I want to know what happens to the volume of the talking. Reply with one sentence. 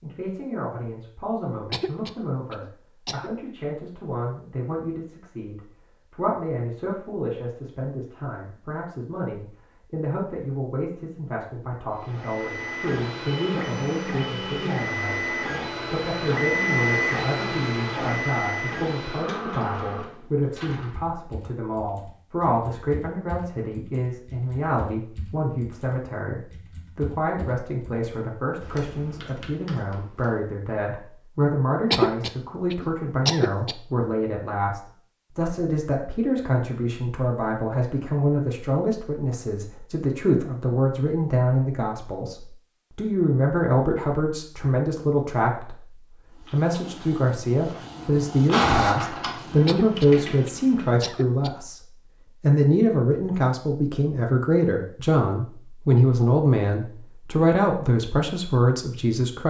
The loudness of the talking goes up.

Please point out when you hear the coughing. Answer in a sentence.
You can hear the coughing from 1.7 to 3.3 s, from 31.9 to 33.8 s and from 49.6 to 51.5 s.